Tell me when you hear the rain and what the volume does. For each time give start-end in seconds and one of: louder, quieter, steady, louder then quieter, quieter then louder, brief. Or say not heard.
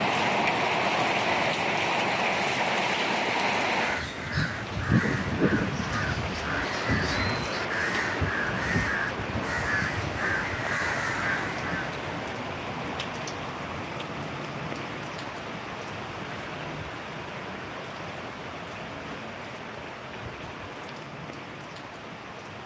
0.0-22.6 quieter.